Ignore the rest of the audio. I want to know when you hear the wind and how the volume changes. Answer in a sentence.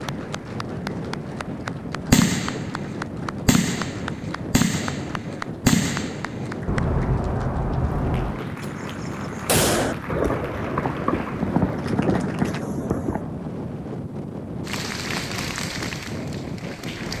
The wind can be heard from 0.0 to 17.1 s, at a steady volume.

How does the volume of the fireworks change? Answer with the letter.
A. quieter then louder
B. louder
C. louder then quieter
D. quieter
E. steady
E.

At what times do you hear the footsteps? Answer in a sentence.
You can't hear the footsteps here.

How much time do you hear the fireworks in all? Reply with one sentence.
The fireworks can be heard for 11 seconds in total.